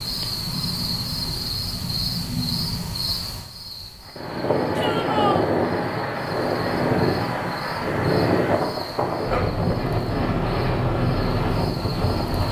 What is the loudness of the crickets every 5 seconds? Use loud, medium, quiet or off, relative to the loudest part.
loud, medium, medium.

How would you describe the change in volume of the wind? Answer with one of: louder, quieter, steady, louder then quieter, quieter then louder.
steady.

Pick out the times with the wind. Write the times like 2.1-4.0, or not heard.
4.0-12.4.